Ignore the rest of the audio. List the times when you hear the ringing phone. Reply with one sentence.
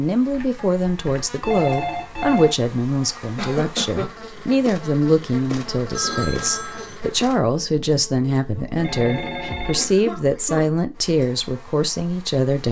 You can hear the ringing phone from 0.3 to 2.5 s, from 5.9 to 7.0 s and from 8.8 to 9.9 s.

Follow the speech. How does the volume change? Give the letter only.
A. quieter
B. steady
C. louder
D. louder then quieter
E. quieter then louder
B.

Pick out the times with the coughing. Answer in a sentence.
You can hear the coughing from 3.4 to 4.0 s and from 9.8 to 10.8 s.